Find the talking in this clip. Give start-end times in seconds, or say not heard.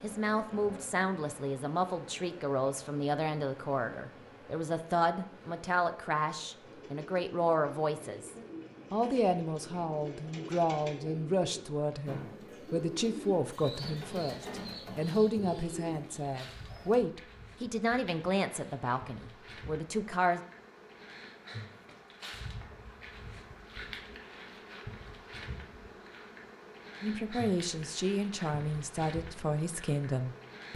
0.0-20.4, 27.0-30.7.